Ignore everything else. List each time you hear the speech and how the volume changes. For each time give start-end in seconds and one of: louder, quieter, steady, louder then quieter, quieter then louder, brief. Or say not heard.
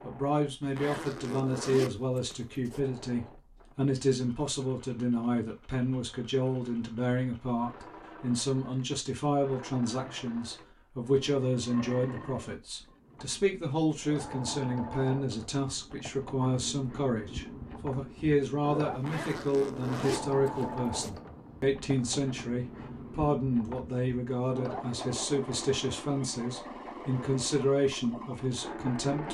0.0-29.2 steady.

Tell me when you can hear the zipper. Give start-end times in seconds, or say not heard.
0.6-2.8, 18.9-21.2.